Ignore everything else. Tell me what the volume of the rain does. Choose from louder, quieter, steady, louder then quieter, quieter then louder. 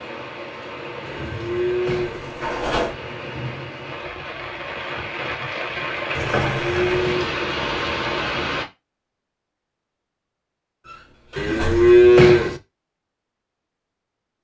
louder.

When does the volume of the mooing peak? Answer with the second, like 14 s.
12 s.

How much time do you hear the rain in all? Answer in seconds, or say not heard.
9 s.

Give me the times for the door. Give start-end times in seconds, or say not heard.
2.1-3.0, 6.1-7.0, 10.8-11.9.